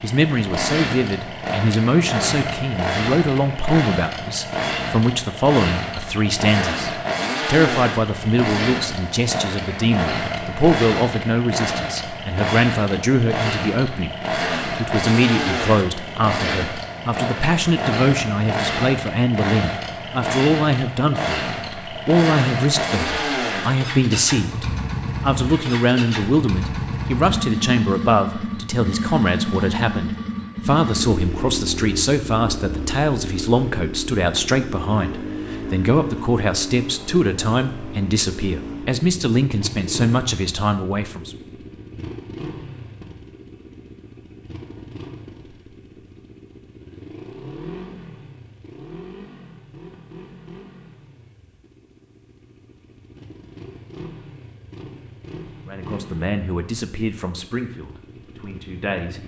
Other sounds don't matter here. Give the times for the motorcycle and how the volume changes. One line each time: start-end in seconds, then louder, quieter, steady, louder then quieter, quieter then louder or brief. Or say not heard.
0.0-59.2 quieter.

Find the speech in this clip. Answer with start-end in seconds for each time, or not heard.
0.0-41.4, 55.6-59.2.